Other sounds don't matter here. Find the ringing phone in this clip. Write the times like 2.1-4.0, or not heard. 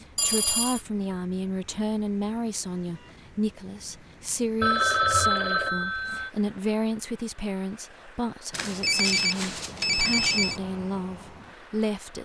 0.1-0.8, 4.6-6.3, 8.5-10.6.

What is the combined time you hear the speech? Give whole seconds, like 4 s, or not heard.
12 s.